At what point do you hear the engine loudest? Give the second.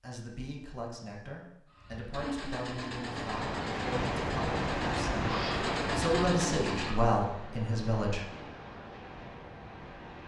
6 s.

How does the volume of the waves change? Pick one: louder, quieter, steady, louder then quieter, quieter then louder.
quieter.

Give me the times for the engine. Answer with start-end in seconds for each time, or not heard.
1.7-7.0.